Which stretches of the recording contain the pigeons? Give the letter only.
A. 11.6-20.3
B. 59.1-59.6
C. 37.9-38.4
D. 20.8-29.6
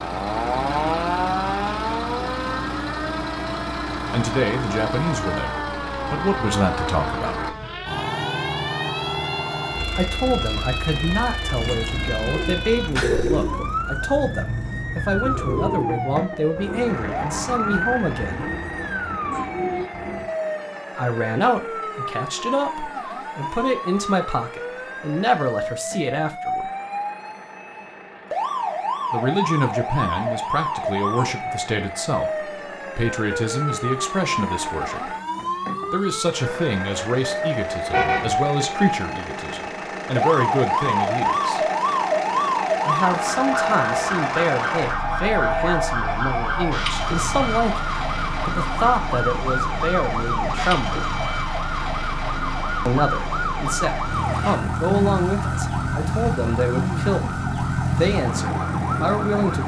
A.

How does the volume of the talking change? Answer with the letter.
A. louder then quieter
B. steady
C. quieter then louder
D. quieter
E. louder
B.